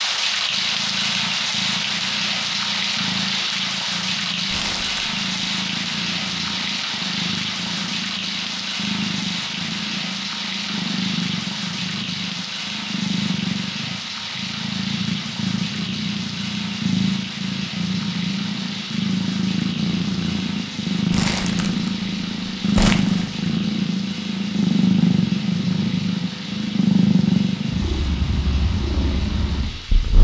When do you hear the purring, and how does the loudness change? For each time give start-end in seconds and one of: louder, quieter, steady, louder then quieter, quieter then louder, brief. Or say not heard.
0.0-30.2 louder.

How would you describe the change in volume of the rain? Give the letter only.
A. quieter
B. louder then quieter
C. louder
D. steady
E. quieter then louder
A.